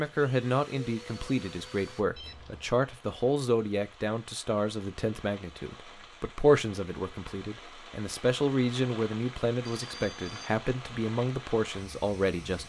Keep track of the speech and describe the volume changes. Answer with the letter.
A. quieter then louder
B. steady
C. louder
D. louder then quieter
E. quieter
B.